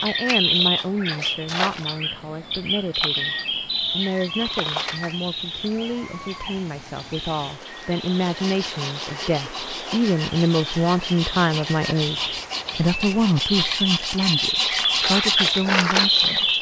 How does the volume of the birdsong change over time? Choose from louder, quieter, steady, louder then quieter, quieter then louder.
quieter then louder.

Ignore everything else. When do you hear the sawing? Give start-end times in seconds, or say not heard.
8.2-15.7.